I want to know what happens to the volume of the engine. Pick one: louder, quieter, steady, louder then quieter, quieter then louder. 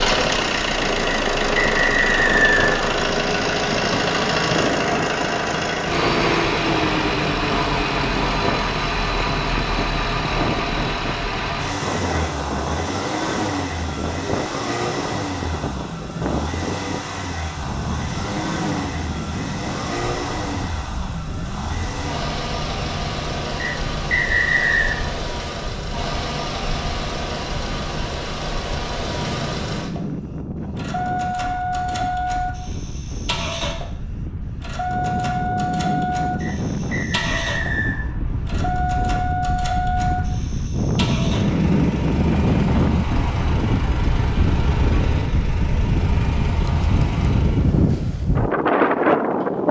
quieter.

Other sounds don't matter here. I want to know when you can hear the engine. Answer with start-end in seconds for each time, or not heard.
0.0-47.9.